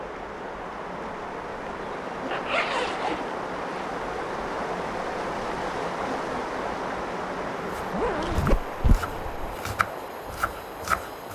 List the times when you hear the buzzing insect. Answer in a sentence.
You can hear the buzzing insect from 0.0 to 8.2 s.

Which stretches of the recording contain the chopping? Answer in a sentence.
The chopping can be heard from 7.7 to 11.3 s.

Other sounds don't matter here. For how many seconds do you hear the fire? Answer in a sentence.
The fire can't be heard in this clip.